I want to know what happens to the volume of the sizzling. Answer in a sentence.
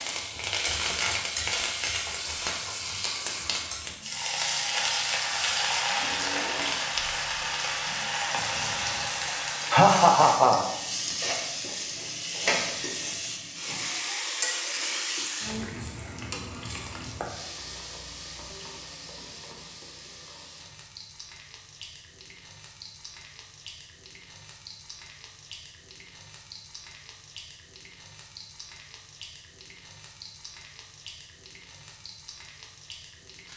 The volume of the sizzling goes down.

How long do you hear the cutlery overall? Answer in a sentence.
The cutlery can't be heard in this clip.